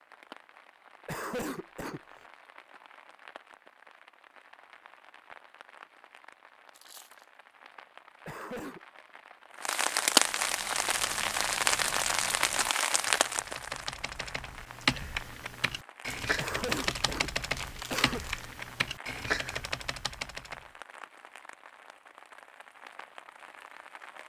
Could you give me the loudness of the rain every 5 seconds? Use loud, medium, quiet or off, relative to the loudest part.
quiet, quiet, loud, quiet, quiet.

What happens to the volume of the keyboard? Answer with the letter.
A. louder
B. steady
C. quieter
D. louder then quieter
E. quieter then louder
A.